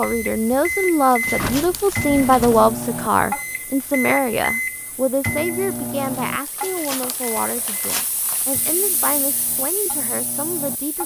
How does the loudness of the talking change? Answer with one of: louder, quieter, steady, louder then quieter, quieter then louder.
quieter.